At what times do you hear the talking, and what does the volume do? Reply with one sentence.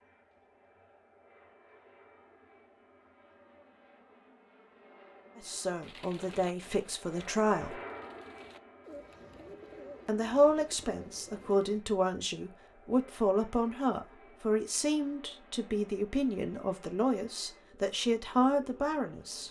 The talking can be heard briefly from 5.3 to 7.8 s; and from 10.1 to 19.4 s, at a steady volume.